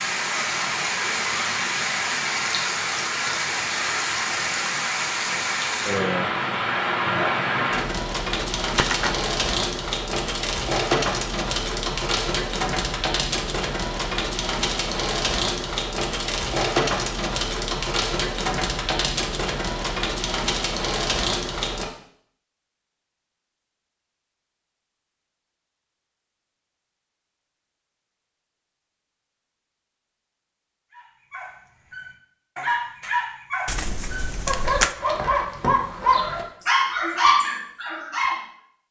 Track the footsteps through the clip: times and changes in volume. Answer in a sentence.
The footsteps can't be heard in this clip.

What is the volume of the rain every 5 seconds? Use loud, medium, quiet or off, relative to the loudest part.
loud, loud, loud, loud, loud, off, off, off.